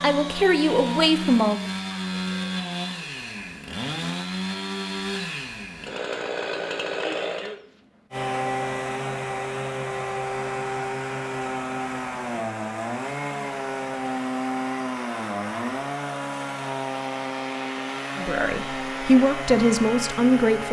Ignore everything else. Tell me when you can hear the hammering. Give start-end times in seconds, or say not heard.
not heard.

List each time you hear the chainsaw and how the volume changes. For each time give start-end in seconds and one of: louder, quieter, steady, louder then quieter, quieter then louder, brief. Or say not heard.
0.0-20.6 steady.